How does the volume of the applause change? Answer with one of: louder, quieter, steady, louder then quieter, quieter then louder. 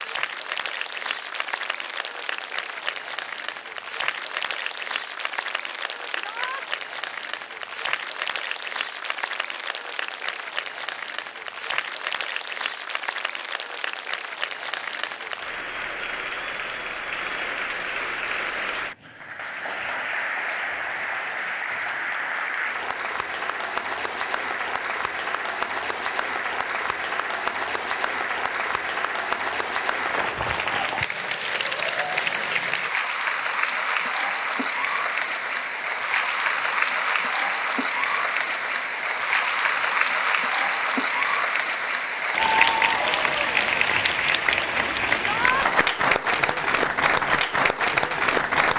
louder.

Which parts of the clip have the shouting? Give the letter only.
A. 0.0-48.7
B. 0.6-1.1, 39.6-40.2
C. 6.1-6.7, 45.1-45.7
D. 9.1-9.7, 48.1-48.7
C.